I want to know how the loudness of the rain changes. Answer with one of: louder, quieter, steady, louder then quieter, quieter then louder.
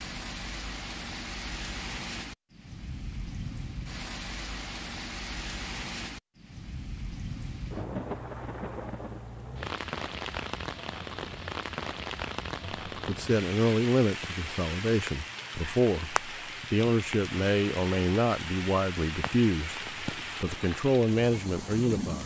steady.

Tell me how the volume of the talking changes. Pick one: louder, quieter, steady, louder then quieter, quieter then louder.
steady.